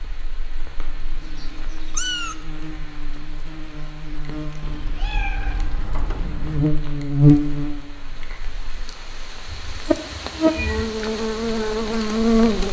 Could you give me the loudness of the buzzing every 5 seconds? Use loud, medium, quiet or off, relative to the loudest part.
quiet, loud, loud.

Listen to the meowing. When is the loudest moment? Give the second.
2 s.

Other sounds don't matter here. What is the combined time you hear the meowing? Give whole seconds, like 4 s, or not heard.
5 s.